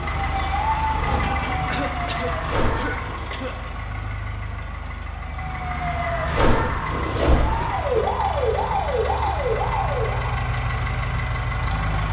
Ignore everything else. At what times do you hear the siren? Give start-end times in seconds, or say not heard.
0.0-3.4, 5.3-10.4.